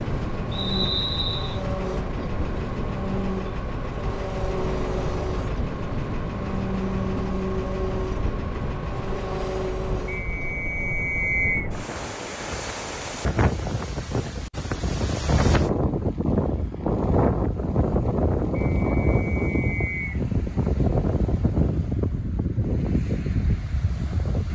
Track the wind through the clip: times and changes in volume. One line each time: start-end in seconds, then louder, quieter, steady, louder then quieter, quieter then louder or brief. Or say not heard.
0.0-24.5 louder.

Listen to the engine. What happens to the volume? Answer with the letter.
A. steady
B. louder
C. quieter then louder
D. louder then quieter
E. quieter
A.